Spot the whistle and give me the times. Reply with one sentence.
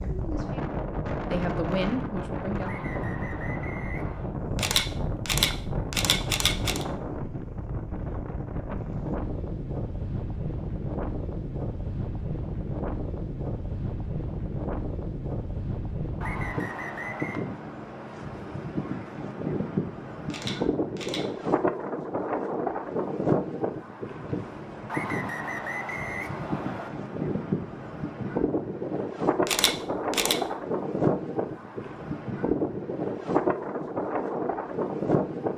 You can hear the whistle from 2.6 to 4.3 s, from 16.2 to 17.4 s and from 24.9 to 26.9 s.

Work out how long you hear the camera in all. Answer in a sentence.
You can hear the camera for 4 seconds altogether.